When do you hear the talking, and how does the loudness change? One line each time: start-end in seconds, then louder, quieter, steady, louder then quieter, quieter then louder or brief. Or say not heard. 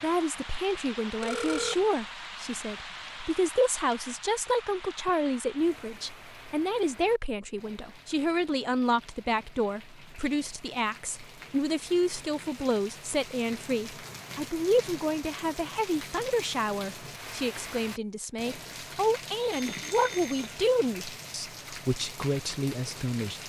0.0-23.4 steady.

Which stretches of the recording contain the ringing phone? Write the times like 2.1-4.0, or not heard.
1.2-1.9, 19.5-20.6.